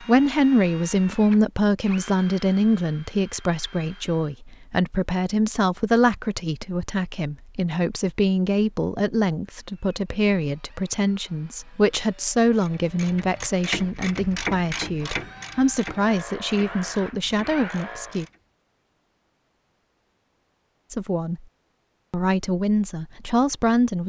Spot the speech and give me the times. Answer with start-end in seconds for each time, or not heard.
0.0-18.2, 20.9-21.4, 22.1-24.0.